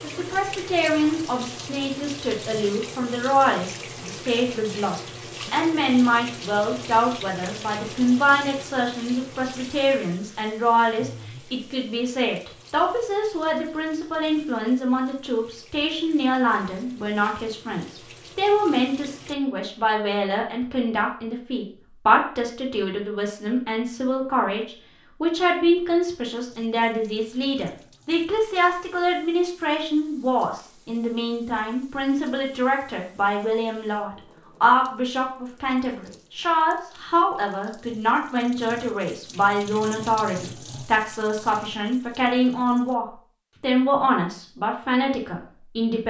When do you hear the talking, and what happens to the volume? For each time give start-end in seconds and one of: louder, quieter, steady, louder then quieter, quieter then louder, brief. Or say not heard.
0.0-46.0 steady.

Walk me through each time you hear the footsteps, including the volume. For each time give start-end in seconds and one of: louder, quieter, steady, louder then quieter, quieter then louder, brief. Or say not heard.
not heard.